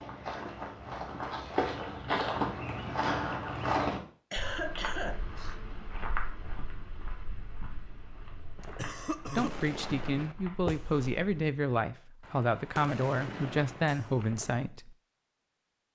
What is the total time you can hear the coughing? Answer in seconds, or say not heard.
2 s.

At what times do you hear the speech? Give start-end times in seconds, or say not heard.
9.3-14.9.